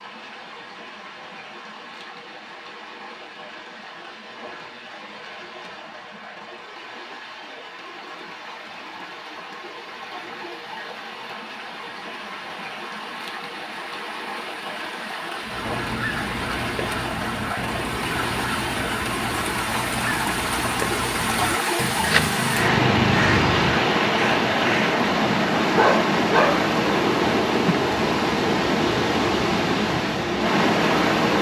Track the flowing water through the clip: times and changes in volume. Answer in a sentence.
You can hear the flowing water from 0.0 to 31.3 s, getting louder.